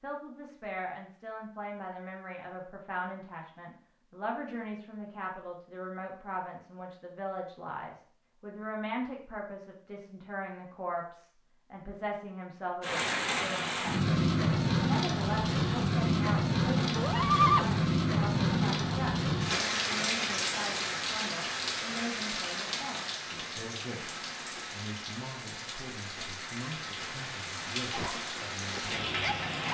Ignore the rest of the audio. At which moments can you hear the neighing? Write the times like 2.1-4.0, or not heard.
16.9-17.7.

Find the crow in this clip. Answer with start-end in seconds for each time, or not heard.
not heard.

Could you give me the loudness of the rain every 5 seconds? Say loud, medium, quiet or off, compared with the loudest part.
off, off, loud, loud, medium, medium.